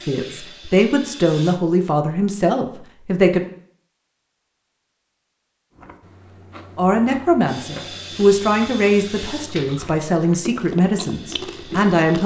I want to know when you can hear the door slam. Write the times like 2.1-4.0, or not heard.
not heard.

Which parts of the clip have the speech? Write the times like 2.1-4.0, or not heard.
0.1-3.5, 6.8-12.2.